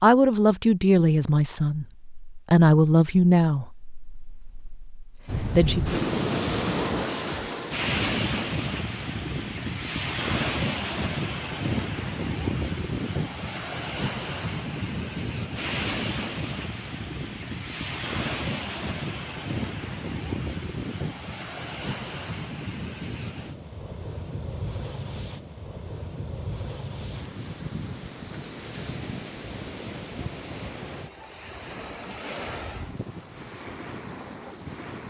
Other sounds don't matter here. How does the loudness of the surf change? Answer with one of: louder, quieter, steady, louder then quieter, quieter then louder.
quieter.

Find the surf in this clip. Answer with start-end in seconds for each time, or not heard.
5.2-35.0.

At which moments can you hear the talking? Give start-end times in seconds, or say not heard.
0.0-6.0.